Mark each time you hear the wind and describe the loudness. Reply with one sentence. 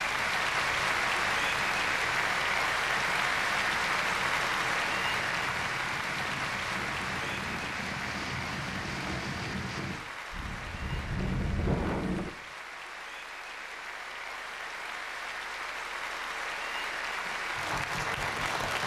You can hear the wind from 0.0 to 12.3 s, getting louder.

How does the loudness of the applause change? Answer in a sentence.
The loudness of the applause goes down, then up.